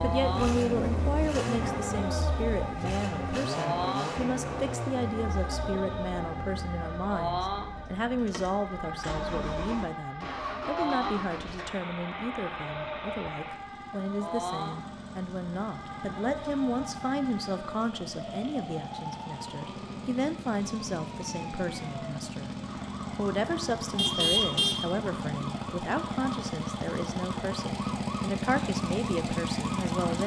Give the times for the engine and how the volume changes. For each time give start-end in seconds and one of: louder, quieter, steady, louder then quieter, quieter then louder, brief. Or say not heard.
0.0-30.2 quieter then louder.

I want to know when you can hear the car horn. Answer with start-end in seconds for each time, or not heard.
23.9-25.0.